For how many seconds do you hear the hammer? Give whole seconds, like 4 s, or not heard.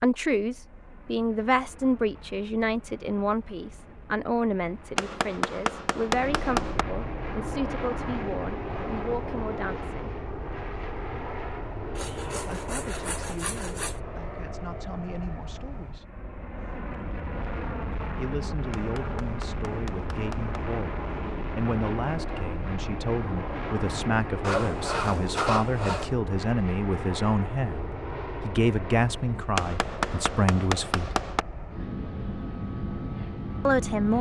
6 s.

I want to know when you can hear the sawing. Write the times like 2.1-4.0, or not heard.
11.9-14.0, 24.4-26.1.